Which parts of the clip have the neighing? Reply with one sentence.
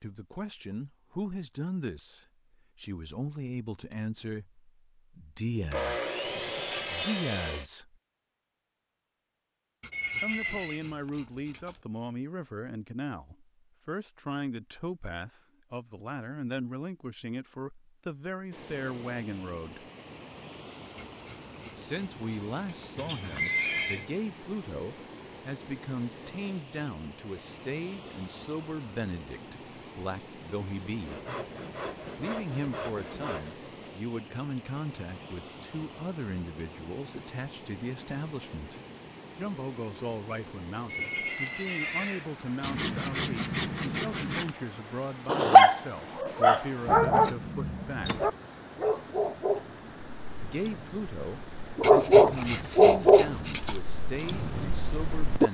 The neighing can be heard from 9.9 to 10.8 s, from 22.9 to 24.1 s and from 40.9 to 42.2 s.